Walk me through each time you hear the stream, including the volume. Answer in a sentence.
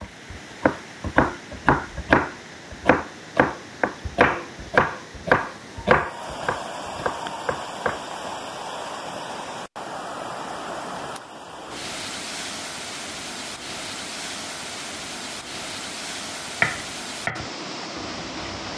You can hear the stream from 0.0 to 18.7 s, getting louder.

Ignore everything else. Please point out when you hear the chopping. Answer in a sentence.
You can hear the chopping from 0.0 to 8.0 s and from 16.6 to 18.7 s.